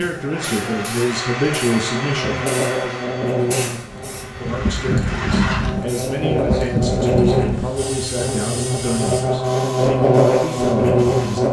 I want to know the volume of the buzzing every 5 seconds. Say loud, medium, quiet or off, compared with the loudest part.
medium, medium, loud.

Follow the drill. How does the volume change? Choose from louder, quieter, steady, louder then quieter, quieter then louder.
quieter then louder.